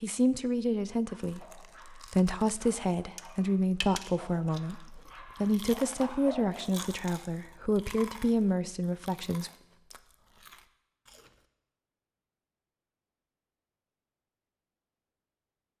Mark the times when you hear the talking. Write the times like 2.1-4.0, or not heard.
0.0-9.5.